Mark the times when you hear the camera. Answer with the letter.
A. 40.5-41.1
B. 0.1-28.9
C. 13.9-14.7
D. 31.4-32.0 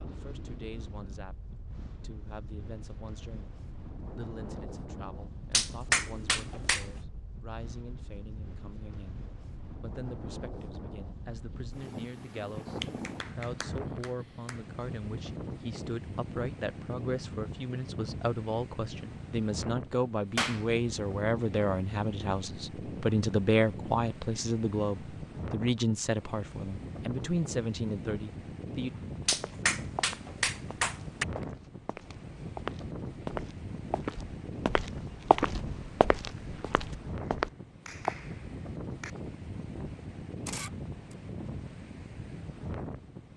A.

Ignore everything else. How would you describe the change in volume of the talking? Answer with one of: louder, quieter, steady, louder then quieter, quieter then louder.
louder.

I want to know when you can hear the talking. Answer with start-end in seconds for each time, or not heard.
0.1-28.9.